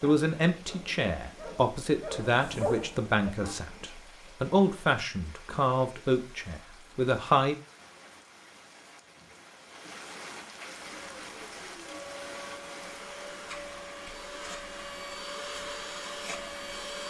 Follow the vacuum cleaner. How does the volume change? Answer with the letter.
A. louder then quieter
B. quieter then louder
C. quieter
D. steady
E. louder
E.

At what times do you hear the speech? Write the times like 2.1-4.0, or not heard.
0.0-7.5.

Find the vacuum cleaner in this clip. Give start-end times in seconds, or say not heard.
10.9-17.0.